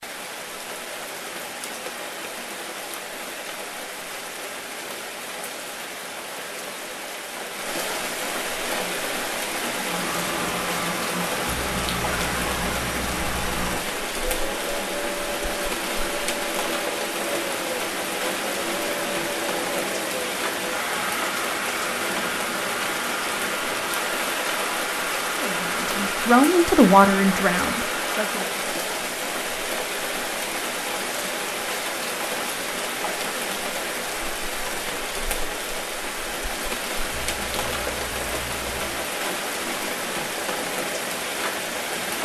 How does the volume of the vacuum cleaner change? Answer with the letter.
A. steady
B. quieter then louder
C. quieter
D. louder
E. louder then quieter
A.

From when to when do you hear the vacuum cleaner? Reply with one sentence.
You can hear the vacuum cleaner from 8.6 to 28.4 s.